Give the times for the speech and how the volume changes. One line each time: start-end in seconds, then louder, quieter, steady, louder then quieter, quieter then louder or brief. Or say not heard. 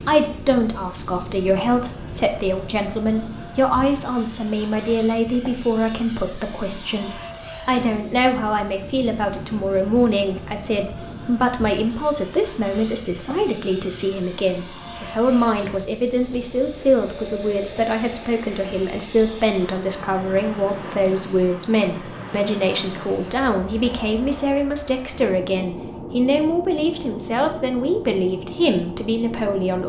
0.1-29.8 steady.